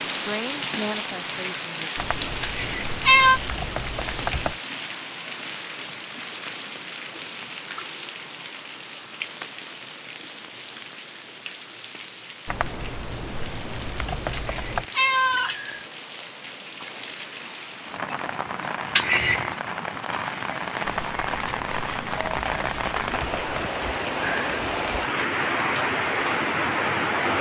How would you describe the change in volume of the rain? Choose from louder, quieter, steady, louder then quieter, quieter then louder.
quieter then louder.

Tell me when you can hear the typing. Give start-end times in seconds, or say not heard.
1.9-4.6, 12.4-14.8, 20.9-23.7.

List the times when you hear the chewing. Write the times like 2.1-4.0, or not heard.
not heard.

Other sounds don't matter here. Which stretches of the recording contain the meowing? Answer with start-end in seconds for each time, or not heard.
2.4-3.4, 14.3-15.8, 18.9-19.5.